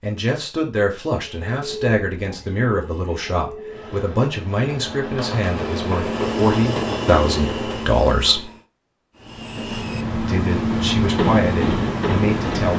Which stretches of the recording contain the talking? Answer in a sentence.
You can hear the talking from 0.0 to 8.4 s and from 10.2 to 12.7 s.